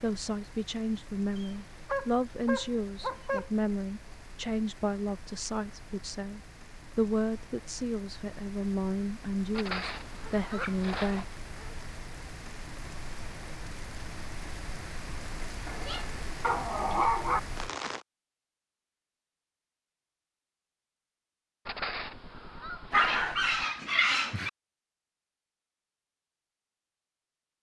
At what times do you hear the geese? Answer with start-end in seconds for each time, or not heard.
9.5-11.3, 21.6-23.6.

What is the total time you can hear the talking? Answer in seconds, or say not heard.
11 s.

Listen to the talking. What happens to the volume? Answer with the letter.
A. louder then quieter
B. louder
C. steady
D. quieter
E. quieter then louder
C.